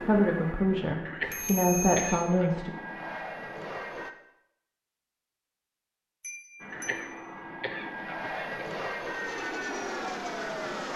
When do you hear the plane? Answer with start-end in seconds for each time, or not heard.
0.0-4.1, 6.5-10.9.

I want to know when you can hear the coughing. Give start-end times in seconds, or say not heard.
1.1-2.6, 6.7-8.7.